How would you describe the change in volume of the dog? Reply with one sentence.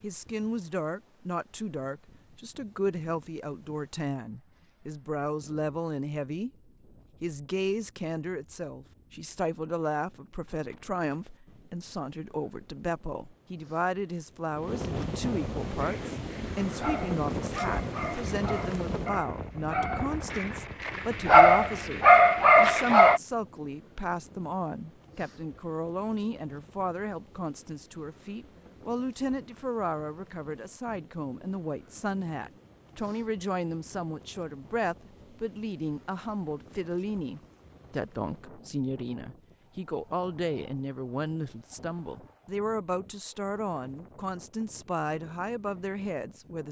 The loudness of the dog goes up.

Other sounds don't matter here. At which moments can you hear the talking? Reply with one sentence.
You can hear the talking from 0.0 to 6.5 s and from 7.2 to 46.6 s.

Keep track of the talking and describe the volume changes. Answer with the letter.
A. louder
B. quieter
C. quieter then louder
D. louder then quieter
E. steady
E.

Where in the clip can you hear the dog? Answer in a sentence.
You can hear the dog from 15.7 to 23.2 s.